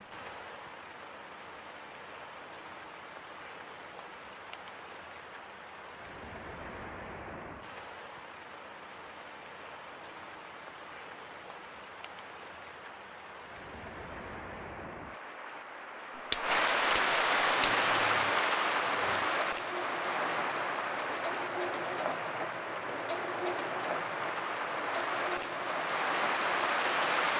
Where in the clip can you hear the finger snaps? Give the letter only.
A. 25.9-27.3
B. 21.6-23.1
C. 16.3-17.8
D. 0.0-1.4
C.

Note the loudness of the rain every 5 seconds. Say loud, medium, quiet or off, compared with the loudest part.
quiet, quiet, quiet, loud, medium, loud.